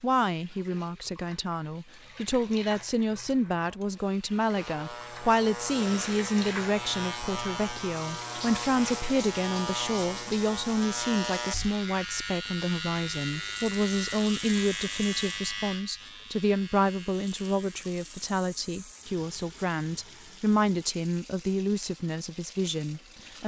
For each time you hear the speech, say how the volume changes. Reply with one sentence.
You can hear the speech from 0.0 to 23.4 s, at a steady volume.